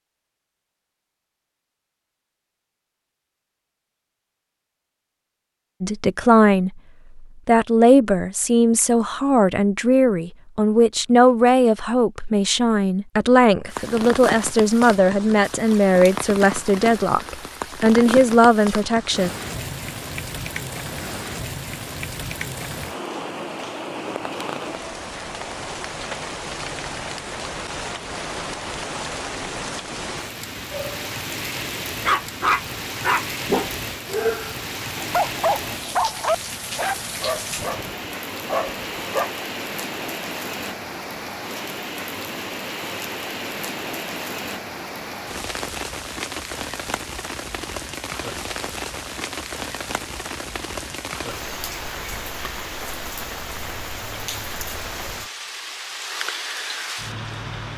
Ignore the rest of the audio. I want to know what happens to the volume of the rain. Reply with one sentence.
The loudness of the rain stays about the same.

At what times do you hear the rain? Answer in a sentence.
You can hear the rain from 13.7 to 57.7 s.